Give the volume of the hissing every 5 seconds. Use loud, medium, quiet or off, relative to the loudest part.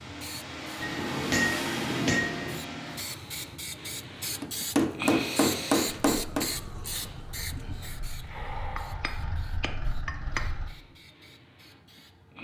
loud, loud, quiet.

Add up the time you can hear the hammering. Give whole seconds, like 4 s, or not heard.
6 s.